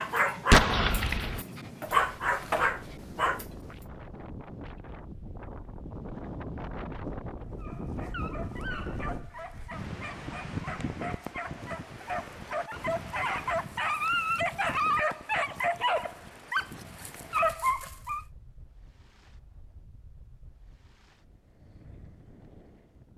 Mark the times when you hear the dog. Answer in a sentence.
You can hear the dog from 0.0 to 3.6 s and from 7.6 to 18.2 s.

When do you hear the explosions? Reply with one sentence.
The explosions can be heard from 0.5 to 1.4 s.